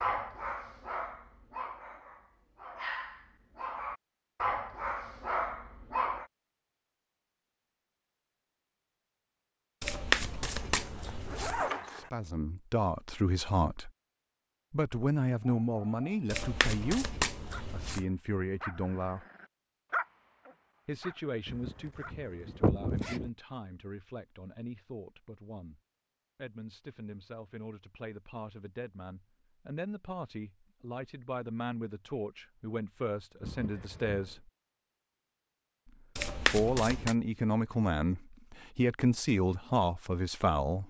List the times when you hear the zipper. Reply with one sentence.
You can hear the zipper from 10.4 to 12.1 s, from 21.4 to 23.3 s and from 33.4 to 34.4 s.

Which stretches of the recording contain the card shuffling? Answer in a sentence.
The card shuffling can be heard from 9.8 to 11.6 s, from 16.3 to 18.1 s and from 36.1 to 37.1 s.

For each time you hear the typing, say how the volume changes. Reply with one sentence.
You can't hear the typing here.